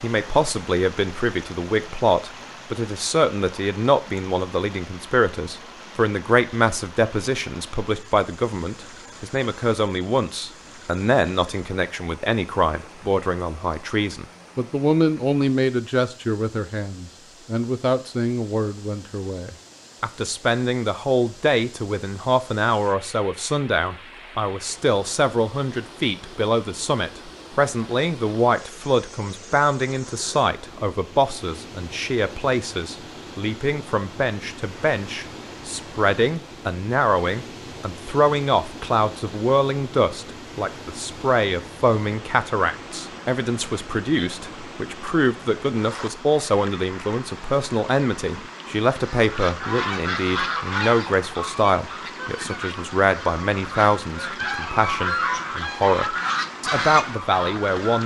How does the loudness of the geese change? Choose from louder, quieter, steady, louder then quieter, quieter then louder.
quieter then louder.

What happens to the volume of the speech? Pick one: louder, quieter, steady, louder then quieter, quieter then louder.
steady.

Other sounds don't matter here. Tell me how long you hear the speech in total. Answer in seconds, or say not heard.
58 s.